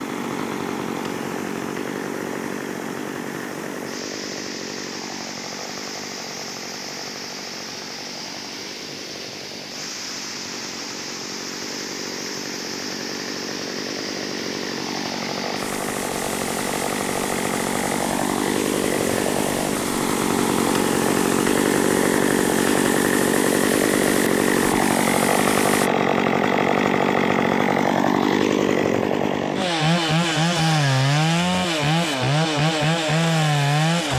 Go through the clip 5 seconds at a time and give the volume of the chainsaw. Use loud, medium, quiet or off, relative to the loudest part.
medium, quiet, quiet, medium, loud, loud, loud.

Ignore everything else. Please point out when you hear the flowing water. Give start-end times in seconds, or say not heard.
0.0-25.9.